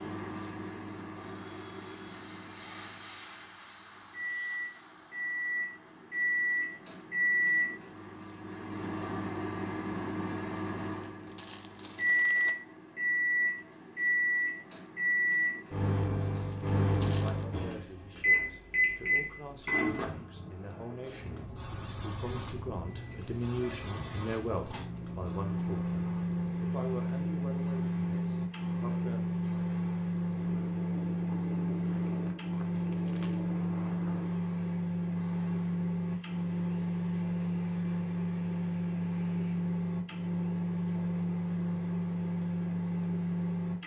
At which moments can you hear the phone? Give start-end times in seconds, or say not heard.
1.2-2.2.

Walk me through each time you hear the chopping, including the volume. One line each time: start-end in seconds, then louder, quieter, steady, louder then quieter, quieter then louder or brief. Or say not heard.
not heard.